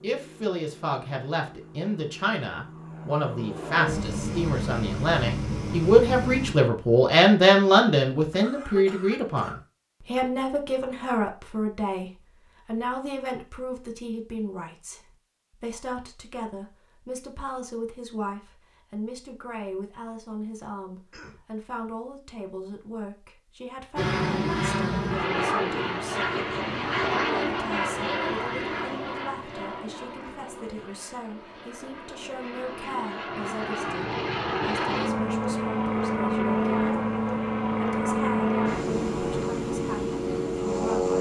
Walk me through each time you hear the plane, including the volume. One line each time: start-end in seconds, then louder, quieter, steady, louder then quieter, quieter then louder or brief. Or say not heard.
0.0-6.5 louder
23.9-41.1 quieter then louder.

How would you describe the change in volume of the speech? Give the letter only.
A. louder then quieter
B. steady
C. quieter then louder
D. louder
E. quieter
E.